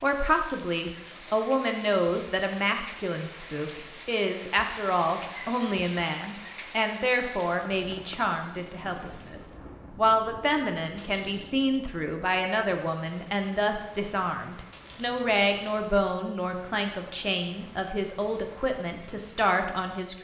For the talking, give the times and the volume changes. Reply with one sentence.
You can hear the talking from 0.0 to 20.1 s, at a steady volume.